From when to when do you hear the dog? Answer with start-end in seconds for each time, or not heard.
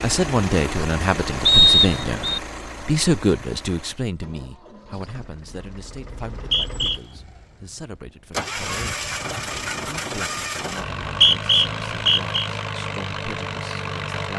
not heard.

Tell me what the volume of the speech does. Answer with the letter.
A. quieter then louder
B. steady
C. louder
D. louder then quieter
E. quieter
E.